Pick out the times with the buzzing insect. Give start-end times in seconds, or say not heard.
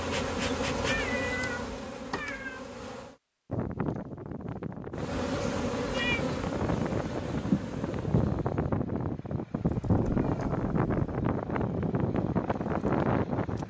0.0-3.1, 5.0-8.3.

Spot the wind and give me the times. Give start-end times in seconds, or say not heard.
3.5-13.6.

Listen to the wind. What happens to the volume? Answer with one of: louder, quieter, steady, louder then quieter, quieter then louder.
louder.